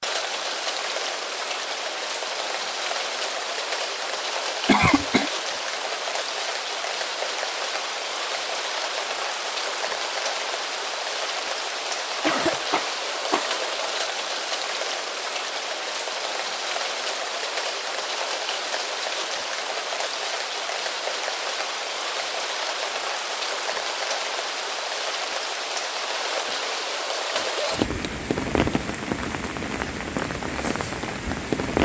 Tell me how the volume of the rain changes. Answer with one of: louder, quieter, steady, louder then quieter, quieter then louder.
steady.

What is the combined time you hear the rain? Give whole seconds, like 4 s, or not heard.
32 s.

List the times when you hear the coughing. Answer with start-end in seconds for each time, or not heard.
4.7-5.3, 12.2-13.6, 26.4-27.9.